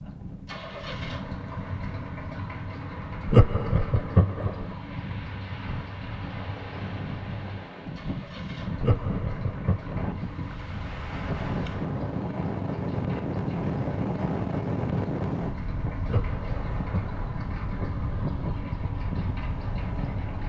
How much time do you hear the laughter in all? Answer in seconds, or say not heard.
4 s.